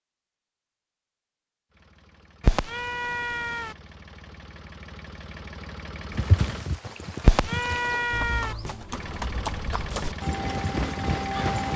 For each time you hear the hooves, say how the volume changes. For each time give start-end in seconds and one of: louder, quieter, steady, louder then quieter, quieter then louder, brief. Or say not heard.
6.1-11.7 louder.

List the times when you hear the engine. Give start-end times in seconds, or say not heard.
1.7-6.7, 8.8-11.7.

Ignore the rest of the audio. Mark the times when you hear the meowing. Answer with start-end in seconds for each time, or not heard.
2.4-3.8, 7.2-8.6.